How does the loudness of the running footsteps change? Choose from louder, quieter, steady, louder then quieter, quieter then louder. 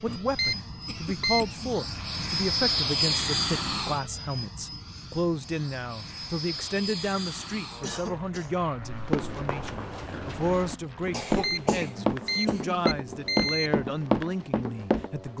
louder.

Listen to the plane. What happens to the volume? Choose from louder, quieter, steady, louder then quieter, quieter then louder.
quieter.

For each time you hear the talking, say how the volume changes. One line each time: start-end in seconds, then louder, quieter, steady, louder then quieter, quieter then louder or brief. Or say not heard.
0.0-15.3 steady.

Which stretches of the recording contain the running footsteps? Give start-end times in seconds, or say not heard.
8.8-15.3.